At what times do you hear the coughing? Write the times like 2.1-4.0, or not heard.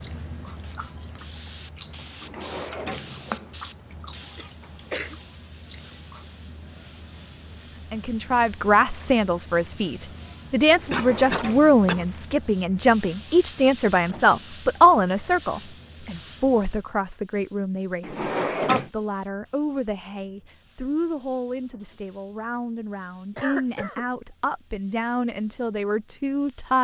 4.2-5.2, 10.9-12.1, 23.4-24.1.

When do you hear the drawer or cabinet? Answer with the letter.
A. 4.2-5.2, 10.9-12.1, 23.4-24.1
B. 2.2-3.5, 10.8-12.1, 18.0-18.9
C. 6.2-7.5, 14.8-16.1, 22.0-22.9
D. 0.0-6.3
B.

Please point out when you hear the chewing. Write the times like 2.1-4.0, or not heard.
0.0-6.3.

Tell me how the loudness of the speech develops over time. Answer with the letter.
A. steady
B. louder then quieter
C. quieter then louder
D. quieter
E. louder
D.